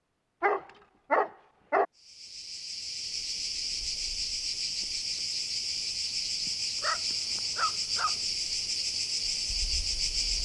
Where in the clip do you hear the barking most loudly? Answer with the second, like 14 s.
1 s.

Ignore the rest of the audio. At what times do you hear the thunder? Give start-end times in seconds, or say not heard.
not heard.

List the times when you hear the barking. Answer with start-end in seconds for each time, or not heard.
0.4-1.9, 6.8-8.2.